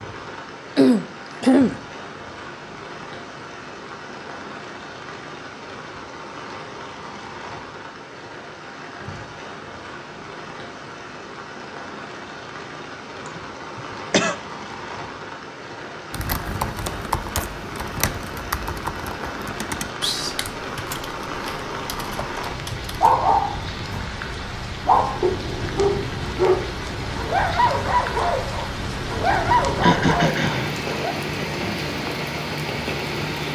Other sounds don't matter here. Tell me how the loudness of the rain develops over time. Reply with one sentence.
The loudness of the rain goes up.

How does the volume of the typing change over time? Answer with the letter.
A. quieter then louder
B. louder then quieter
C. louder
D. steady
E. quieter
E.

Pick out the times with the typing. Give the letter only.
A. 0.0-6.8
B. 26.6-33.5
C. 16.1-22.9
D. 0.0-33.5
C.